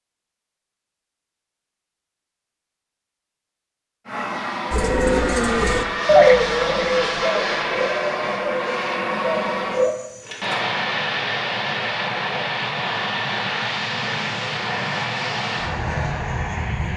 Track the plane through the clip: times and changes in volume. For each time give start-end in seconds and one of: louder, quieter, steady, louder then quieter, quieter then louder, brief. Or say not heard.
4.0-16.9 steady.